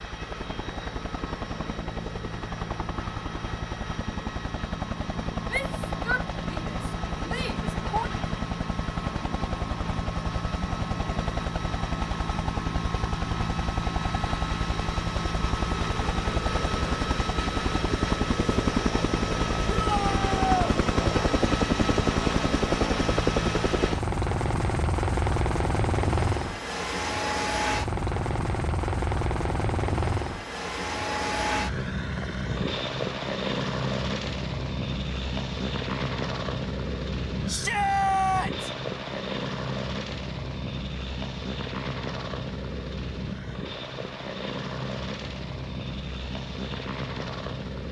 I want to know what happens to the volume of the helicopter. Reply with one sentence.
The loudness of the helicopter goes up, then down.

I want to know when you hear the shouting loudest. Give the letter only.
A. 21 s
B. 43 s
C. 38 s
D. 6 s
C.